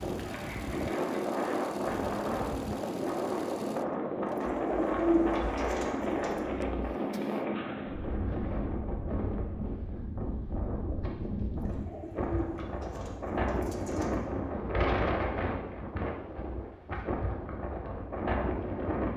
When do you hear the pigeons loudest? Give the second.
5 s.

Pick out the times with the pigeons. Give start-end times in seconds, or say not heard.
4.3-6.5, 11.8-14.2.